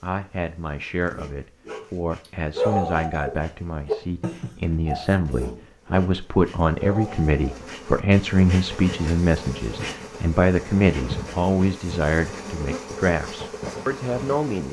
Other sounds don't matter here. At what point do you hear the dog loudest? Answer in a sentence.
The volume of the dog peaks at 3 seconds.